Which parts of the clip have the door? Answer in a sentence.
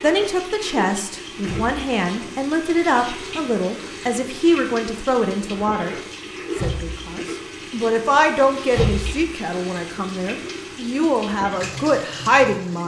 The door can be heard from 1.4 to 1.9 s, from 6.5 to 7.0 s and from 8.7 to 9.2 s.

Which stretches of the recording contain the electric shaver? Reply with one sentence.
You can't hear the electric shaver here.